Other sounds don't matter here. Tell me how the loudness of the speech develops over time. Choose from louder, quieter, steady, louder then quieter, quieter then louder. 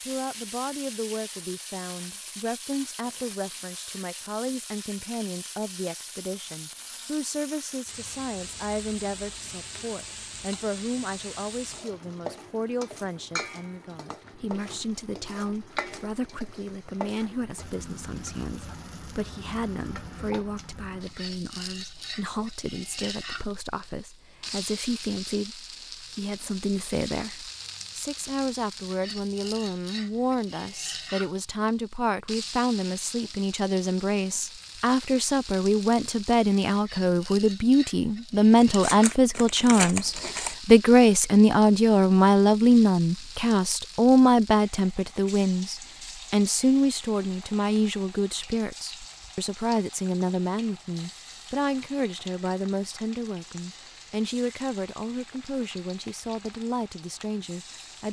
louder then quieter.